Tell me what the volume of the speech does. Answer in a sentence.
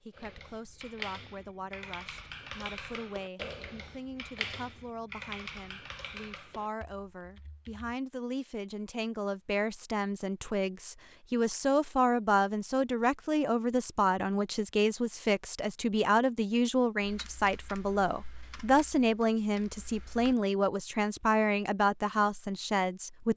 The loudness of the speech goes up.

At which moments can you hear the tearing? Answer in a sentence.
The tearing can't be heard in this clip.